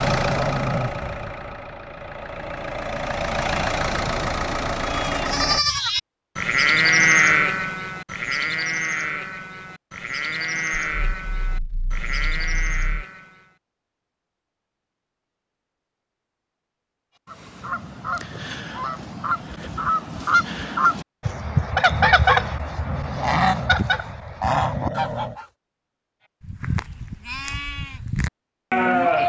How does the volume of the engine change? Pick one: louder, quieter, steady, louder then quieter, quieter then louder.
quieter then louder.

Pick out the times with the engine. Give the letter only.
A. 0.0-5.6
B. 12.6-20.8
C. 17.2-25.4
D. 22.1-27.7
A.